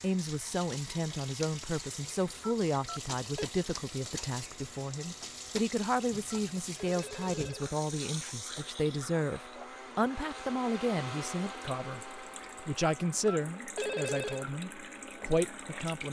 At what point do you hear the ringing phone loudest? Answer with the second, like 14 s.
14 s.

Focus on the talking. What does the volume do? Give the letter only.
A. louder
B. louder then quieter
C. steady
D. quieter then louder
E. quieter
C.